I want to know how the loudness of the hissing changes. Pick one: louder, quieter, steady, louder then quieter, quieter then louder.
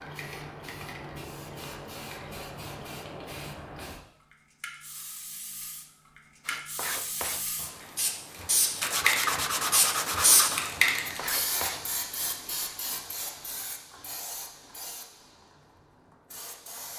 louder then quieter.